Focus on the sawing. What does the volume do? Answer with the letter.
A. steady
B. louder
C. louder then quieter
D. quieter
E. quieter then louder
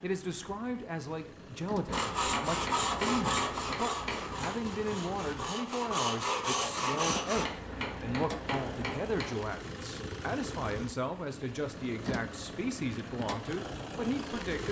E.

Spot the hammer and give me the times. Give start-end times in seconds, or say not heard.
1.9-4.5, 7.3-9.5.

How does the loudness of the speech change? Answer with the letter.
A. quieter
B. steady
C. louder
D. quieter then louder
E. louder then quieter
B.